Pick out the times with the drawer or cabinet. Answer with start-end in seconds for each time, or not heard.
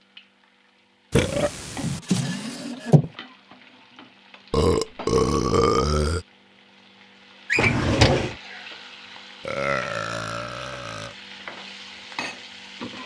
1.8-3.1, 7.5-8.3.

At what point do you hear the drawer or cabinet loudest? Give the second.
8 s.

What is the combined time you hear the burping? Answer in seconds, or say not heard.
4 s.